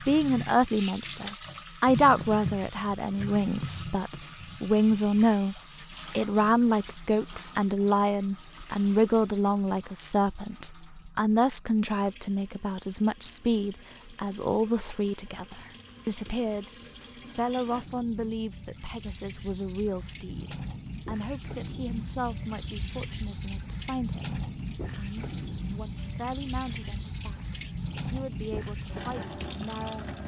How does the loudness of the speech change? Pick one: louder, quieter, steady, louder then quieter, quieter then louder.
quieter.